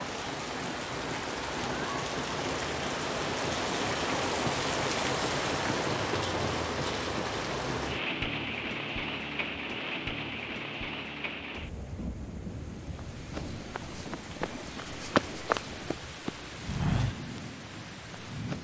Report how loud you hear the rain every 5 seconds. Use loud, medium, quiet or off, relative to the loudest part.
loud, loud, medium, medium.